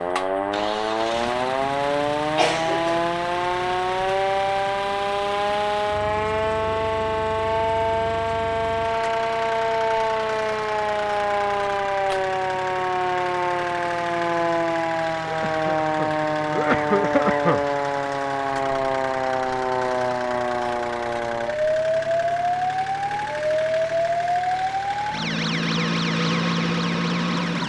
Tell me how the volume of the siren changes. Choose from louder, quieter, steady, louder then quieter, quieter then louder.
steady.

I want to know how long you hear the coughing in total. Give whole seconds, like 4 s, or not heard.
3 s.